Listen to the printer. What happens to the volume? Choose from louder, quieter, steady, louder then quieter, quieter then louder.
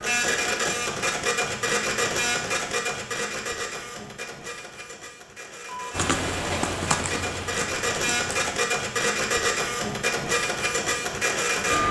quieter then louder.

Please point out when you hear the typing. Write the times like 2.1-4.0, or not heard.
5.9-8.3.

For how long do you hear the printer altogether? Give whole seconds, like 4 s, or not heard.
12 s.